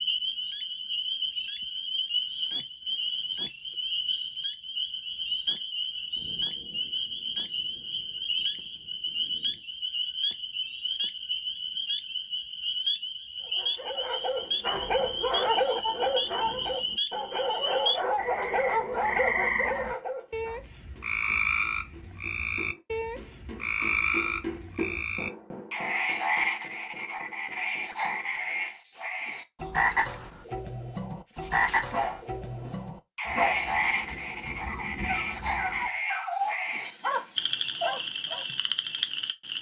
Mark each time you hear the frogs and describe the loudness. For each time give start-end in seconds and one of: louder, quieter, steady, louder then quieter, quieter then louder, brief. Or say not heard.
0.0-39.5 steady.